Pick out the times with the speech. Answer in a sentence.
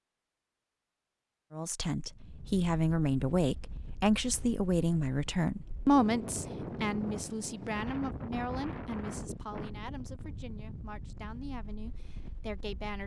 You can hear the speech from 1.5 to 13.0 s.